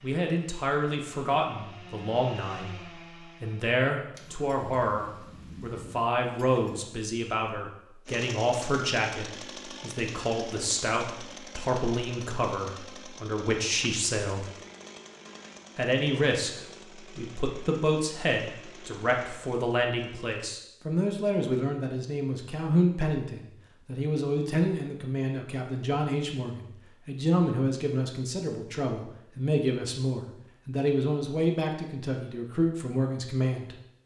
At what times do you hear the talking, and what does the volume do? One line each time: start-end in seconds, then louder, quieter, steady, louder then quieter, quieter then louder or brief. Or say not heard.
0.0-2.7 brief
3.4-14.5 steady
15.8-33.8 steady.